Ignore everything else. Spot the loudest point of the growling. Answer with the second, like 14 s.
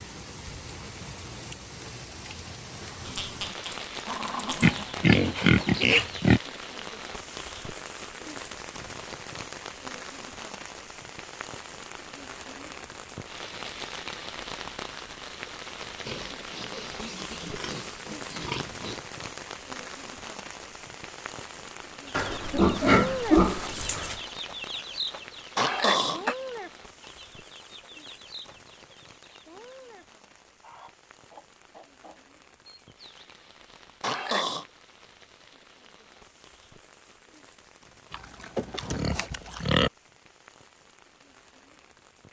26 s.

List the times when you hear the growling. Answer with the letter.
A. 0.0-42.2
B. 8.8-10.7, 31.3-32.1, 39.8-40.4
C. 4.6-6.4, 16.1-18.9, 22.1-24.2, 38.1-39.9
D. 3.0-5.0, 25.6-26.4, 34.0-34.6
D.